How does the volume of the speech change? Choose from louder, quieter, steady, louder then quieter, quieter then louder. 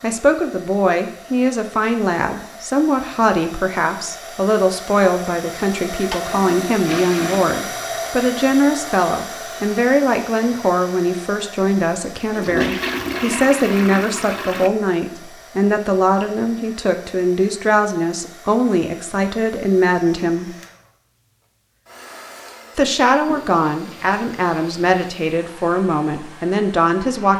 steady.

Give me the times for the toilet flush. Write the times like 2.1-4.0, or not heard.
6.1-7.5, 12.2-14.7, 23.2-24.9.